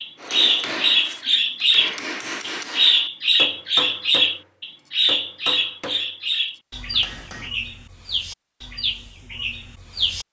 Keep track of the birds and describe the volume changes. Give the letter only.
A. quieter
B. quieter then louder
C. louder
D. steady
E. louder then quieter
A.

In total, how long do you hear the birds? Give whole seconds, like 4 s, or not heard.
10 s.